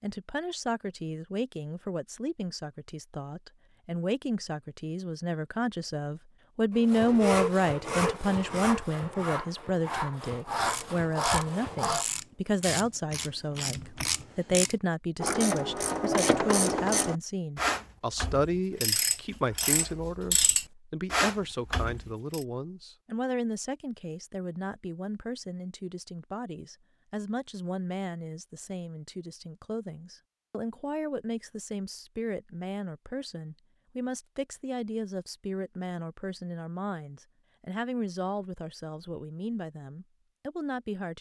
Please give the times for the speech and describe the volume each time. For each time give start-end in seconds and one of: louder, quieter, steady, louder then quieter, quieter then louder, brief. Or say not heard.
0.0-41.1 quieter.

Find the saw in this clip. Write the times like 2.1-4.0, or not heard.
6.8-12.1.